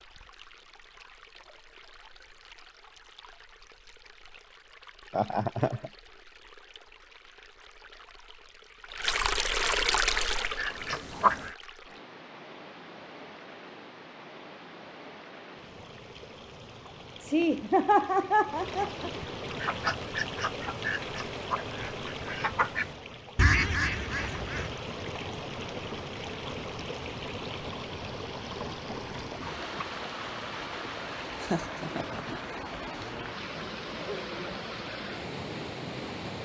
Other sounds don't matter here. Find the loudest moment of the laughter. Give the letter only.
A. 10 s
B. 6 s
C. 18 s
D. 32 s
C.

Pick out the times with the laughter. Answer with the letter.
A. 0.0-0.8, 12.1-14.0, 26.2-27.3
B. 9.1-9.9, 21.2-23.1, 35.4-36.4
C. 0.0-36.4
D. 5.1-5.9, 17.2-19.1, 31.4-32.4
D.